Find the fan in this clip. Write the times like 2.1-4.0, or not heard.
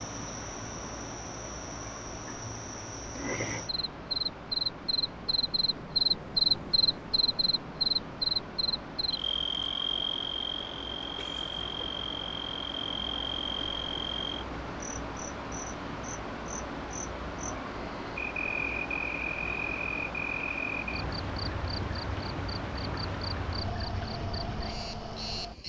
0.0-25.6.